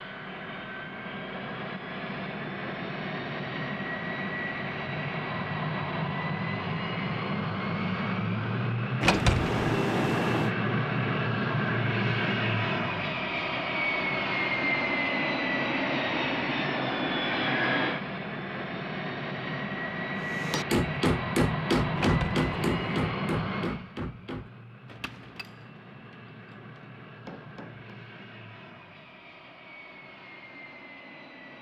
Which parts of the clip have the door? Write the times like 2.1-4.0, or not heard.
9.0-10.5, 21.9-23.1.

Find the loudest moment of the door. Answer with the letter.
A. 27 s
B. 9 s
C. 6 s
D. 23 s
B.